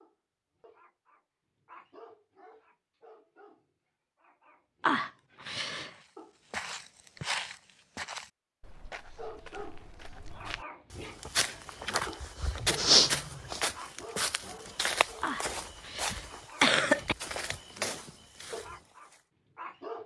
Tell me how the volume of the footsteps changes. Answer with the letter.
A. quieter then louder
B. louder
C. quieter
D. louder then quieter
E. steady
D.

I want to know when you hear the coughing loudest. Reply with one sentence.
The volume of the coughing peaks at 17 seconds.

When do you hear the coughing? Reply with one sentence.
The coughing can be heard from 4.8 to 5.9 s and from 15.2 to 17.1 s.